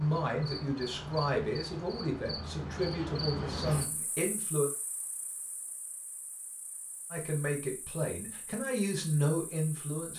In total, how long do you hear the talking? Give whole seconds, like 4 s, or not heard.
8 s.